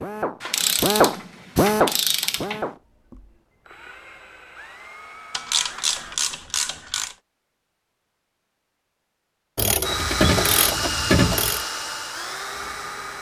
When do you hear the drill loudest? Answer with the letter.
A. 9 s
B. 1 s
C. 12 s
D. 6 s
B.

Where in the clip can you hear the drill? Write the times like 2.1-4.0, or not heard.
0.0-6.2, 9.8-13.1.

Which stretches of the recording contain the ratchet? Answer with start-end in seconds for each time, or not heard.
0.4-2.6, 5.3-7.2, 9.6-11.7.